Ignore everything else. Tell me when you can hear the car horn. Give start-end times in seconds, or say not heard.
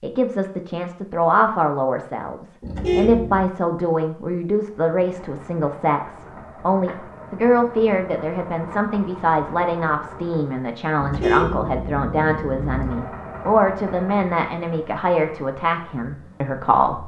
2.6-3.5, 11.0-12.9.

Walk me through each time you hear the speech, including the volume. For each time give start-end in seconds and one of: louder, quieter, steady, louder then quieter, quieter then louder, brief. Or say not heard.
0.0-17.0 steady.